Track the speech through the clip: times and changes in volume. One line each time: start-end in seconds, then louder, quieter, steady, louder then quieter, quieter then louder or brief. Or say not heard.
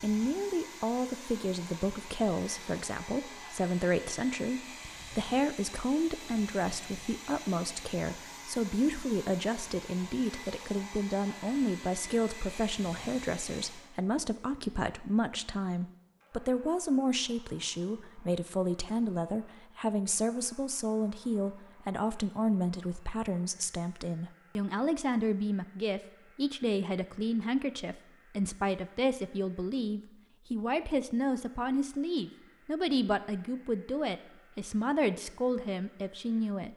0.0-36.7 steady.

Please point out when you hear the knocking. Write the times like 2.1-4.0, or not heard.
not heard.